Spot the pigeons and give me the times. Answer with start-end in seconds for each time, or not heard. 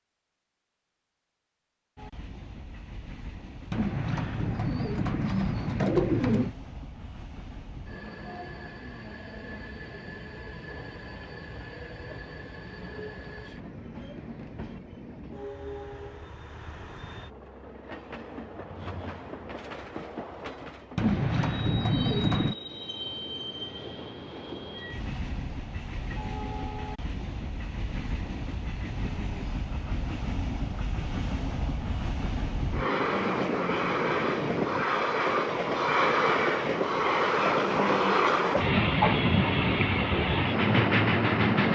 3.7-6.5, 20.9-22.6.